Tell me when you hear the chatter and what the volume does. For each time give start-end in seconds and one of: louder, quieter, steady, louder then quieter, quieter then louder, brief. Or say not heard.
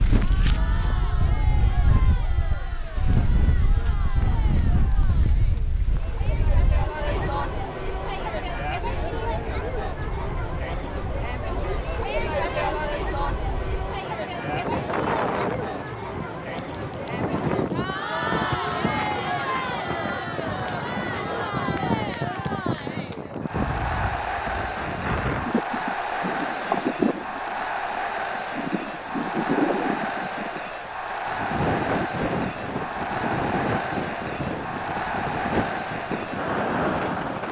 0.1-37.4 louder.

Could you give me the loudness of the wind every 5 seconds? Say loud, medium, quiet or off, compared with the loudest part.
loud, medium, medium, loud, loud, loud, loud, loud.